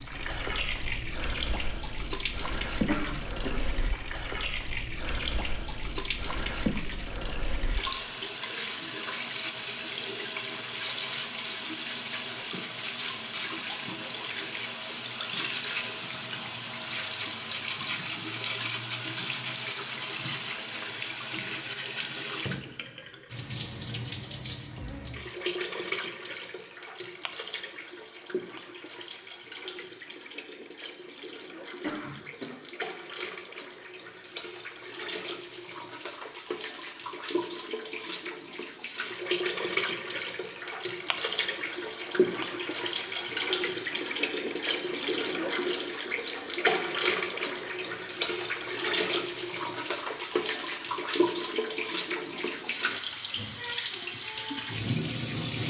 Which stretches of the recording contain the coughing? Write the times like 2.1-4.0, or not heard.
2.9-3.6, 31.8-32.5.